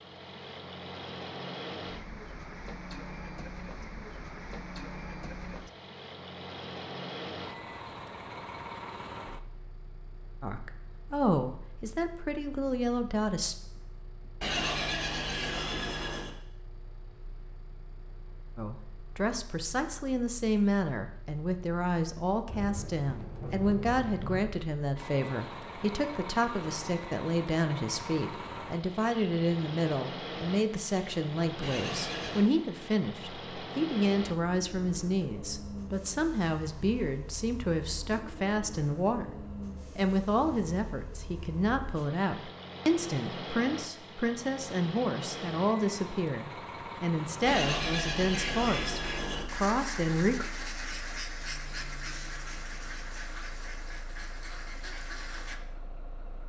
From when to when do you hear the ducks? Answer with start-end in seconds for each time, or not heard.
48.3-55.6.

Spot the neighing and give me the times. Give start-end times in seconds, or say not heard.
14.4-16.4, 31.6-32.5, 47.5-49.5.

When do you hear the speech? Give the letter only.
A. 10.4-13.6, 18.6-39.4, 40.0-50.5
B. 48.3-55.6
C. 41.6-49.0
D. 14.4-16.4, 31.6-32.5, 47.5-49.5
A.